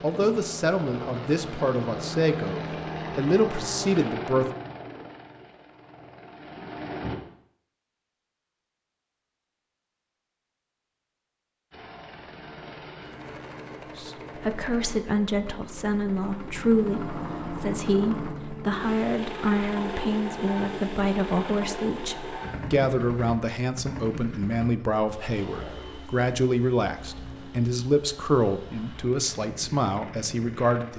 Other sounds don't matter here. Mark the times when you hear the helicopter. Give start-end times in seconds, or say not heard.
0.0-7.2, 11.7-30.9.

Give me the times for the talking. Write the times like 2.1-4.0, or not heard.
0.0-4.5, 13.9-30.9.